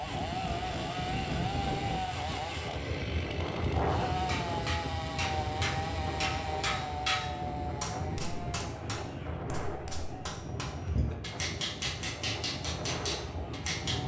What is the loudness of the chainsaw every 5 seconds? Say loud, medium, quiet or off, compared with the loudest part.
loud, loud, quiet.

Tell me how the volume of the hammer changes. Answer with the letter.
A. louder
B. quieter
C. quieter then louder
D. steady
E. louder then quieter
C.